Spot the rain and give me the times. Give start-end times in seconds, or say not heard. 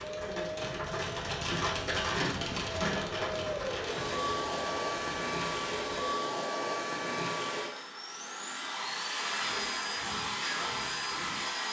0.0-6.2.